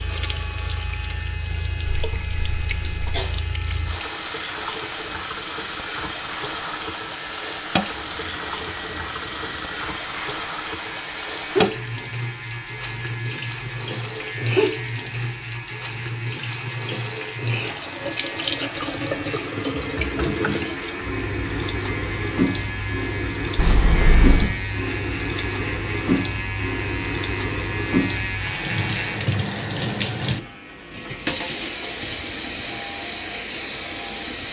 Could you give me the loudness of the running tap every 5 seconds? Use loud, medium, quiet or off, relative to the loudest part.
medium, loud, loud, loud, loud, loud, loud.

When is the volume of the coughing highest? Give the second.
24 s.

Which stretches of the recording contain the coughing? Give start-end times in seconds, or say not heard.
1.9-3.3, 23.6-24.6.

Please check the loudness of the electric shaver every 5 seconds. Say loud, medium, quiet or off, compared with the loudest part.
medium, medium, medium, medium, loud, loud, medium.